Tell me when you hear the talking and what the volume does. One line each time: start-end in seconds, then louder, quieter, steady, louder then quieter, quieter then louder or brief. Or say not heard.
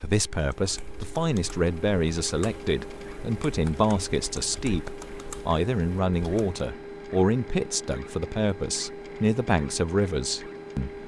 0.0-11.0 steady.